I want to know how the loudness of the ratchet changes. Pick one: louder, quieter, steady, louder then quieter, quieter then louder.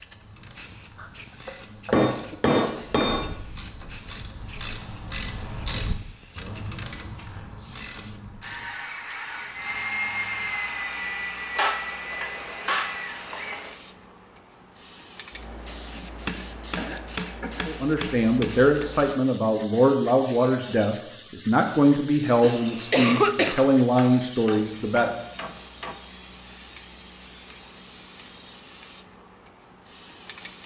louder then quieter.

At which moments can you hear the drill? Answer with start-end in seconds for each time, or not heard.
8.4-13.9.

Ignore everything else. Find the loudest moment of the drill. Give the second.
10 s.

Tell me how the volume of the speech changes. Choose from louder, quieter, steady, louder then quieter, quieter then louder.
steady.